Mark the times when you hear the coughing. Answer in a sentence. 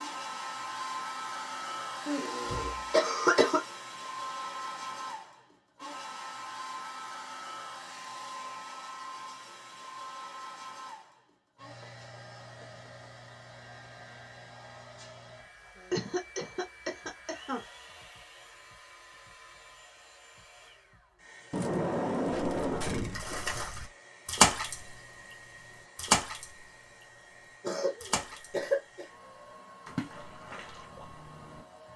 You can hear the coughing from 2.0 to 3.6 s, from 15.9 to 17.6 s and from 27.6 to 29.1 s.